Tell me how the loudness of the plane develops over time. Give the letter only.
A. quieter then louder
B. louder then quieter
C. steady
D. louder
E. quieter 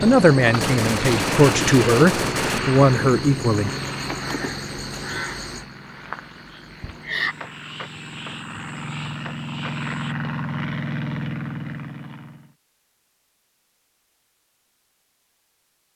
A.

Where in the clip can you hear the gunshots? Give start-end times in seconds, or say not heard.
0.6-2.6.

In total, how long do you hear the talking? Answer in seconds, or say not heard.
4 s.